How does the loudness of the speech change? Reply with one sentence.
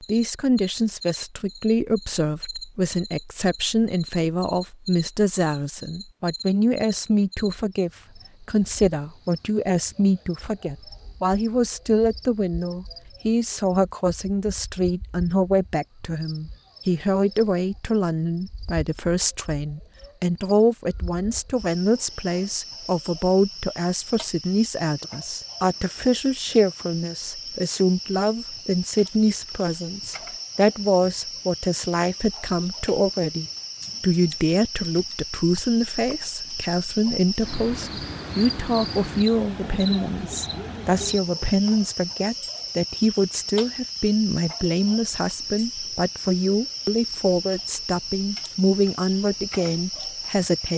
The volume of the speech stays about the same.